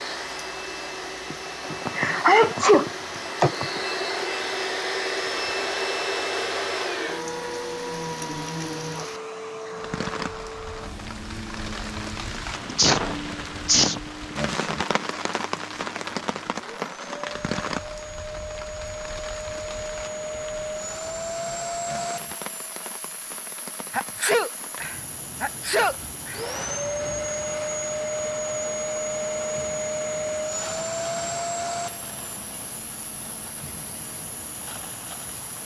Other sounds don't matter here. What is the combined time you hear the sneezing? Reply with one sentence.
The sneezing can be heard for 6 seconds in total.